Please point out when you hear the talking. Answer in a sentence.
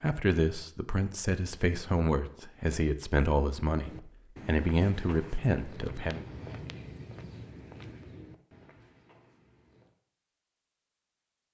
The talking can be heard from 0.0 to 6.2 s.